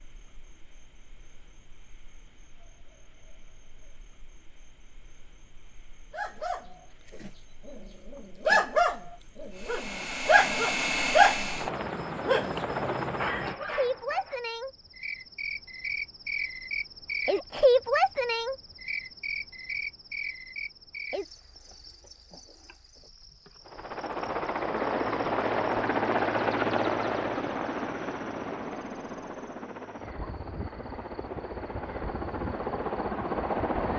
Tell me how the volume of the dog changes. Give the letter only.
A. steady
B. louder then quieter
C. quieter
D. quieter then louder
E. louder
B.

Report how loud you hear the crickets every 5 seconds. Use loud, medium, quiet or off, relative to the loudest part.
quiet, quiet, medium, loud, quiet, quiet, quiet.